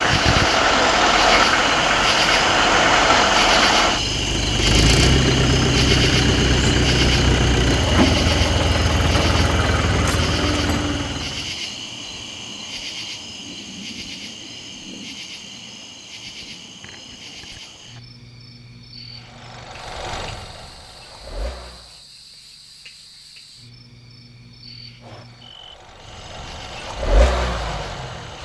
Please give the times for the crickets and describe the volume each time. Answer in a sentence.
You can hear the crickets from 0.0 to 28.3 s, getting quieter.